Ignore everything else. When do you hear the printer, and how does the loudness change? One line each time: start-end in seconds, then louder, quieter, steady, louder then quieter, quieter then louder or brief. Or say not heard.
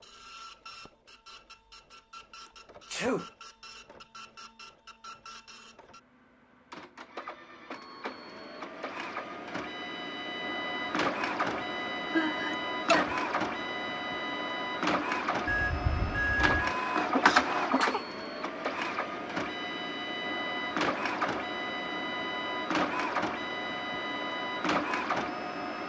0.0-25.8 louder.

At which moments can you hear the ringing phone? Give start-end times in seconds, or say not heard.
15.4-16.8.